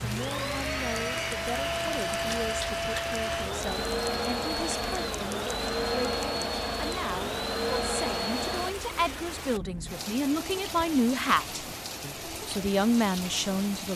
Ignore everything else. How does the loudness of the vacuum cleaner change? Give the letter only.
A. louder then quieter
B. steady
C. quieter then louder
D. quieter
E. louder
B.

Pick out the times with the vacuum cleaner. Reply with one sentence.
You can hear the vacuum cleaner from 0.0 to 8.8 s.